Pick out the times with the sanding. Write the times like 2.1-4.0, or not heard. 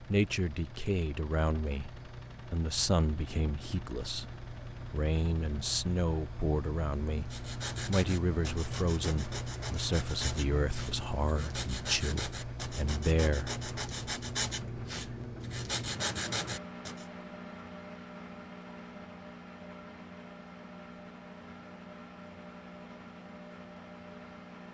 7.2-17.1.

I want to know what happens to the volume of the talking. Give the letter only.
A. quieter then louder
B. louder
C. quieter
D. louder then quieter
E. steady
E.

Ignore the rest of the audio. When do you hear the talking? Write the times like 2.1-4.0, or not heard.
0.1-7.2, 7.8-13.5.